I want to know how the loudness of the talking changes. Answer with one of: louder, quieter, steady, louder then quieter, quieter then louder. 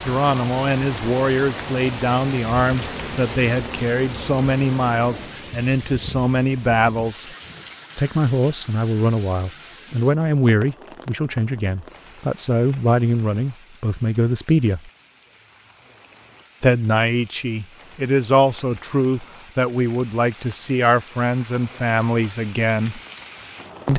steady.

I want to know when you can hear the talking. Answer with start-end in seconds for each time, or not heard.
0.1-7.2, 8.0-14.9, 16.6-23.0.